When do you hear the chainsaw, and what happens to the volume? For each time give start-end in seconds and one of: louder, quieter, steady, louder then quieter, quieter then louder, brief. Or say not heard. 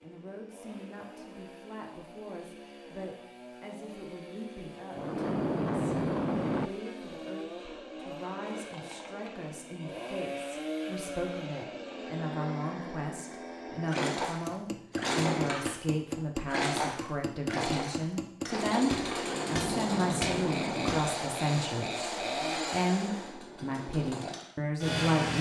0.0-25.3 louder.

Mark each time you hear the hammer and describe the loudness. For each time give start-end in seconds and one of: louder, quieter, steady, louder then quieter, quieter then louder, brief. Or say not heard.
14.4-21.1 steady.